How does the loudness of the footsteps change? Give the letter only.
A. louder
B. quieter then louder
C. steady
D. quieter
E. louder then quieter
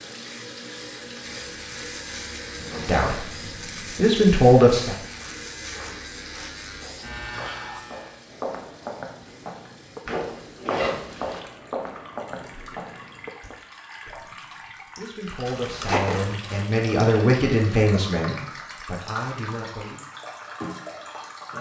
A.